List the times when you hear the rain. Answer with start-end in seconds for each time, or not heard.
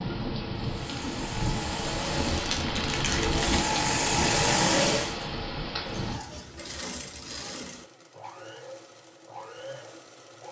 0.0-6.2.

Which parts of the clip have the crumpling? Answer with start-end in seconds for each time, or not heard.
2.3-3.8.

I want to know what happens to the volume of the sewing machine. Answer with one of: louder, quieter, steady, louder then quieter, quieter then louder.
louder then quieter.